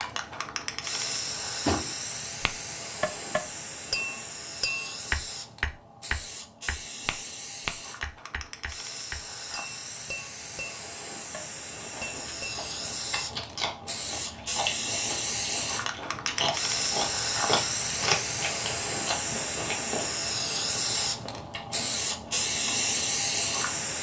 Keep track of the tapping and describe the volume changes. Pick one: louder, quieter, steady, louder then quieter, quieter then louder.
quieter.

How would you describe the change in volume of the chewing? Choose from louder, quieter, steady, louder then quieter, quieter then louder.
louder then quieter.